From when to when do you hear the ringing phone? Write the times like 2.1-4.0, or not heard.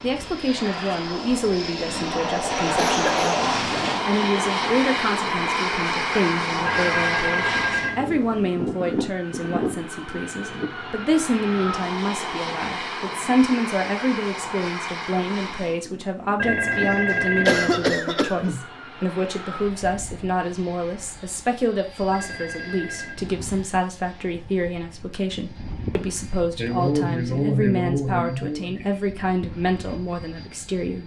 6.7-8.4, 16.4-17.9, 22.1-23.2.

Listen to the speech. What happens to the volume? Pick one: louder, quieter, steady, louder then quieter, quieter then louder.
steady.